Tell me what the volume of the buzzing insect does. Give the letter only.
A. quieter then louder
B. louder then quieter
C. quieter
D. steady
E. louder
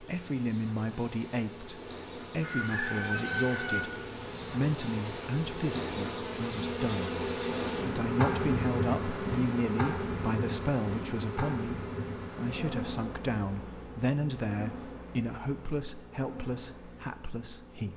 B.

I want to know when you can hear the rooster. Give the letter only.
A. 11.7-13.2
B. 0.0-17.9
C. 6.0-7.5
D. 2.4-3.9
D.